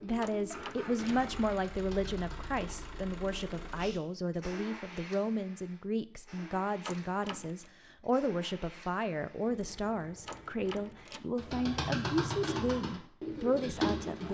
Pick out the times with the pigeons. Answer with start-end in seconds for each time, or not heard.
0.0-3.0, 11.3-14.2.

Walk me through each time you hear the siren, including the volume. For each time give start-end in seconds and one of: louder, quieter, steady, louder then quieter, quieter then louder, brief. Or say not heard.
not heard.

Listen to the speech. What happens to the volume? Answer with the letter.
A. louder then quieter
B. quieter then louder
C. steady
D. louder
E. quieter
C.